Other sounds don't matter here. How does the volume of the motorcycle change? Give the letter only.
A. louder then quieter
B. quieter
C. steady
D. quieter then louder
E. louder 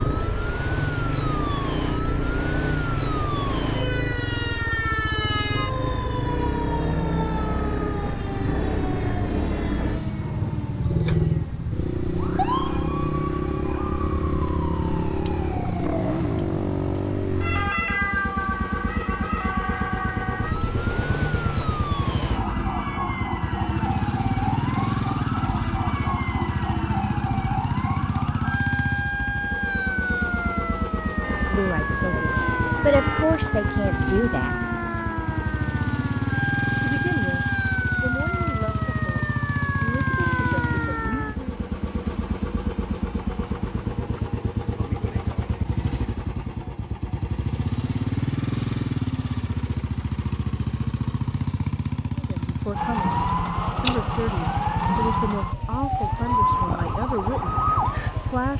C.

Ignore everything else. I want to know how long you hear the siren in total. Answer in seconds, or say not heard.
47 s.